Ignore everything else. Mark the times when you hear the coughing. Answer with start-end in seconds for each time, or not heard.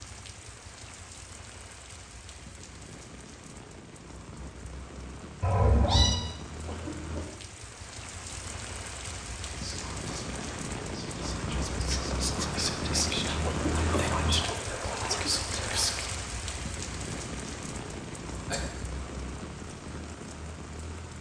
6.7-7.2, 13.4-15.3.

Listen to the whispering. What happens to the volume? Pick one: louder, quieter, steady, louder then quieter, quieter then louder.
louder.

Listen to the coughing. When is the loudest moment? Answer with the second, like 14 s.
14 s.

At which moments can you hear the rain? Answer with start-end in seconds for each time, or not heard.
0.0-21.1.